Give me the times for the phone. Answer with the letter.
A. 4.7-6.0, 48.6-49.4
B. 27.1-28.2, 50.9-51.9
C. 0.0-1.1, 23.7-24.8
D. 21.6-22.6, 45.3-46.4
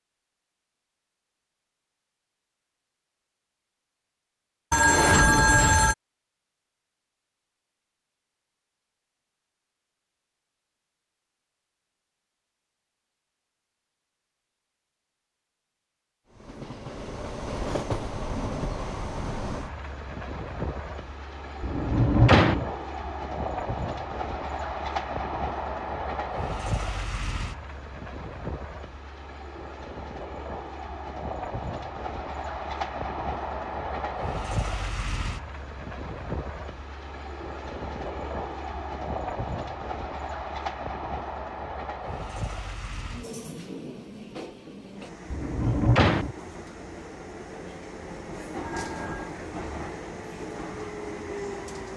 A.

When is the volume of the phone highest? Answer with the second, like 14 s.
5 s.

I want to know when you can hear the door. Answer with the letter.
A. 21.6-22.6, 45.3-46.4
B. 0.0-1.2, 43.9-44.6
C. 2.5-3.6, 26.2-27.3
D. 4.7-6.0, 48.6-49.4
A.